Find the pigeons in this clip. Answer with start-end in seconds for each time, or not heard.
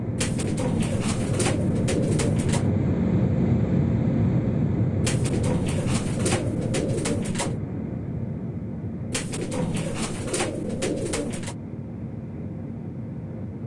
0.1-2.7, 5.0-7.6, 9.1-11.6.